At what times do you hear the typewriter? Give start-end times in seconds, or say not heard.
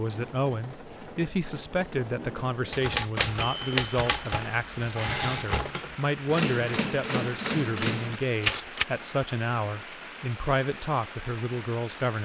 2.7-8.8.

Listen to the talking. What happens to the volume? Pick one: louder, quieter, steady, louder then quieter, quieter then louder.
steady.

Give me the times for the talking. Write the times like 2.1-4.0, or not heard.
0.0-12.2.